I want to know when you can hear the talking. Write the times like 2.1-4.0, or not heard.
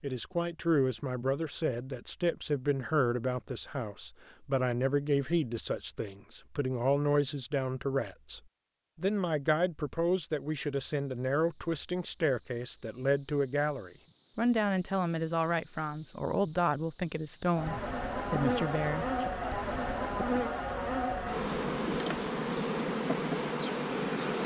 0.0-19.3.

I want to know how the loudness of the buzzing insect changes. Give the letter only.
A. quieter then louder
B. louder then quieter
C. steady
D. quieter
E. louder
E.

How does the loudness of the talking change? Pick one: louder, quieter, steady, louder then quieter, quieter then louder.
steady.